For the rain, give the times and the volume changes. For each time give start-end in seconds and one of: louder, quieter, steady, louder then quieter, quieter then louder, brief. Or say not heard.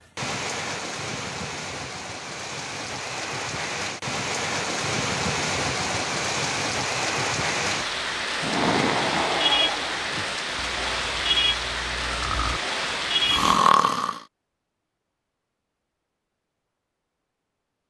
0.1-13.6 louder.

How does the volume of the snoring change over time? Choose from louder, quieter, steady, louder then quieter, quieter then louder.
quieter then louder.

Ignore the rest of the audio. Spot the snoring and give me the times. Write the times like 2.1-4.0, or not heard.
8.4-14.2.